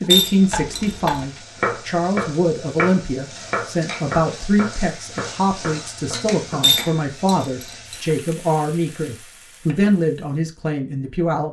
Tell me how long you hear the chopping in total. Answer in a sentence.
You can hear the chopping for 7 seconds altogether.